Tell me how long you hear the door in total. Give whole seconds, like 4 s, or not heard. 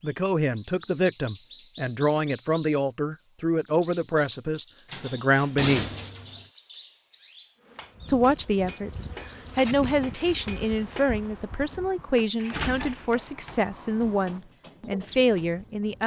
3 s.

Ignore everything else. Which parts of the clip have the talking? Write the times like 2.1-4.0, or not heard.
0.0-5.8, 8.1-16.0.